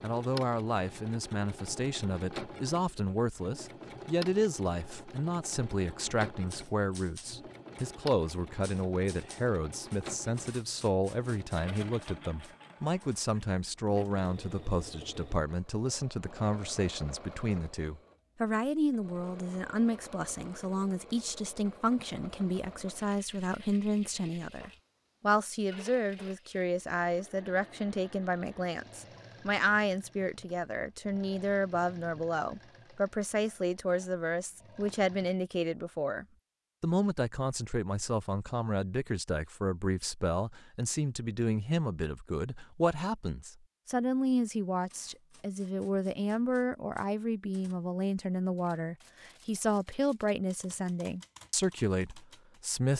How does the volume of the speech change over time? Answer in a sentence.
The volume of the speech stays about the same.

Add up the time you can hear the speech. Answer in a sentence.
The speech can be heard for 53 seconds in total.